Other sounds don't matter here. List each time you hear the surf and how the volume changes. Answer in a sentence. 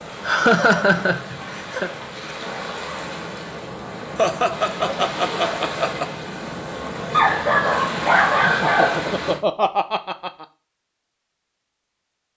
The surf can be heard from 0.0 to 9.4 s, getting louder.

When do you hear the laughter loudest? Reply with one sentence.
The volume of the laughter peaks at 1 second.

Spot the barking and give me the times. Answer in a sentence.
The barking can be heard from 7.1 to 9.1 s.